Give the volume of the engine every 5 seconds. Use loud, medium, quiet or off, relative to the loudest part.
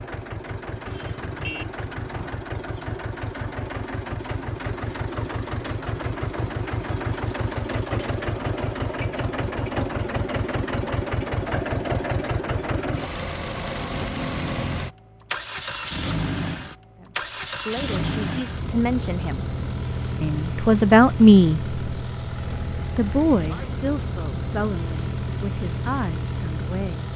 medium, loud, loud, loud, loud, loud.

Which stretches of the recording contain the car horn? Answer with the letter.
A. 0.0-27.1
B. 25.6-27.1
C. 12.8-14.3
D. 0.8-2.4
D.